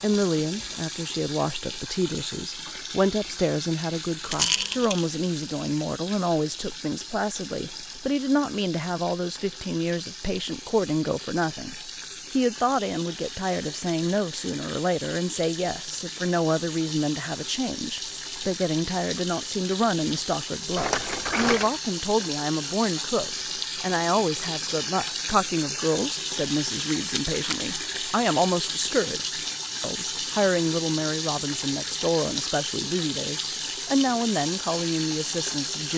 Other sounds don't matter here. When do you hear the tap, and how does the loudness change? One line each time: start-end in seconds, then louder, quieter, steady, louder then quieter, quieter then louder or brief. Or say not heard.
0.0-35.9 louder.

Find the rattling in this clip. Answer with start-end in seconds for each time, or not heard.
4.3-5.0, 20.8-21.8, 27.1-27.6.